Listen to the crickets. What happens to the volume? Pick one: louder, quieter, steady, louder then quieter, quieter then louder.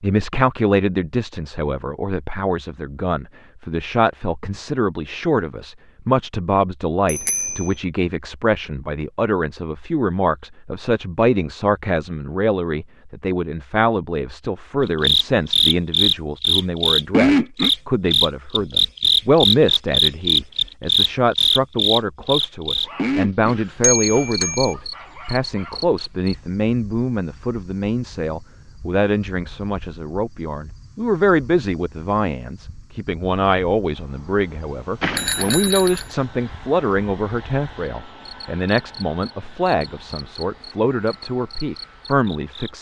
quieter then louder.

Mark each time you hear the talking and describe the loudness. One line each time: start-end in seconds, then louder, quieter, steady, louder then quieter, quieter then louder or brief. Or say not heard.
0.0-42.7 steady.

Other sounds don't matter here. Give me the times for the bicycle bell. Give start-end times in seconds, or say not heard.
7.0-7.8, 23.8-24.8, 35.0-36.0.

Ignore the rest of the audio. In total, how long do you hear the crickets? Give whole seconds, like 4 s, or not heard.
28 s.